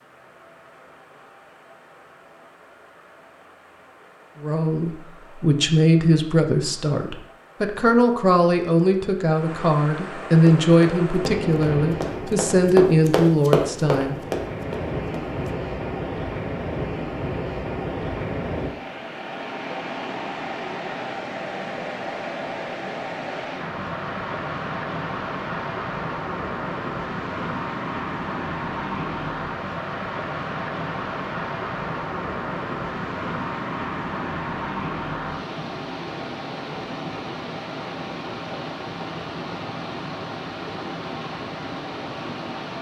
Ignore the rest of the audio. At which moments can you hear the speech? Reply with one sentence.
The speech can be heard from 4.4 to 14.2 s.